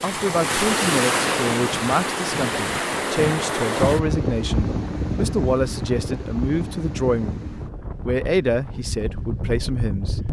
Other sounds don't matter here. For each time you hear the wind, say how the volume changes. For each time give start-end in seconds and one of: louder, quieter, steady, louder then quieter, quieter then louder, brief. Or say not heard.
0.0-10.2 quieter.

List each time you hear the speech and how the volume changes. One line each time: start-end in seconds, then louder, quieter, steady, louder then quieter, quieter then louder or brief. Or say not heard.
0.0-10.2 steady.